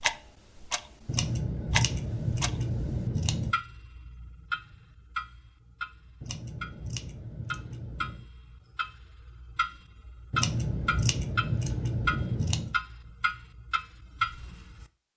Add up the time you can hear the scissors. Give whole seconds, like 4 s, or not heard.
7 s.